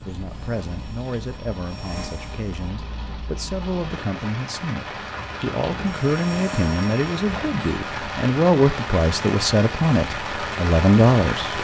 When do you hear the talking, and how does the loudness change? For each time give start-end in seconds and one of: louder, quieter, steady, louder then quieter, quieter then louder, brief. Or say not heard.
0.0-11.5 louder.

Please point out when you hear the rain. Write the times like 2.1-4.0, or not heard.
0.0-11.5.